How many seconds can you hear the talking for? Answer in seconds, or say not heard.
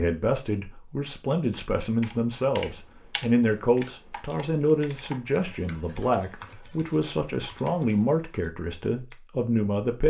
10 s.